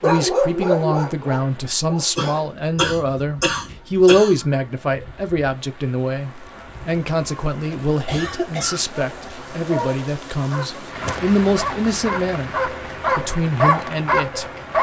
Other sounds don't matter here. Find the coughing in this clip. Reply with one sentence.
The coughing can be heard from 2.1 to 4.3 s and from 7.8 to 8.9 s.